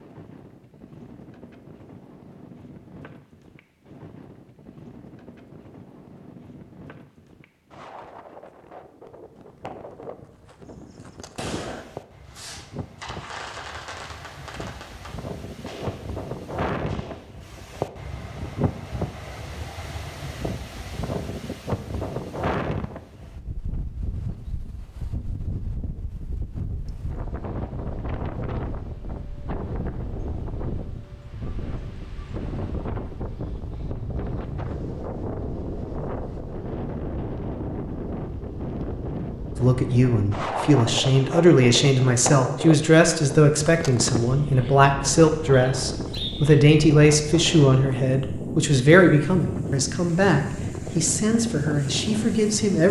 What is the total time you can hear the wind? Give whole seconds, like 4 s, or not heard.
53 s.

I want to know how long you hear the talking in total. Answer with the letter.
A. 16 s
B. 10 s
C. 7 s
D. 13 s
D.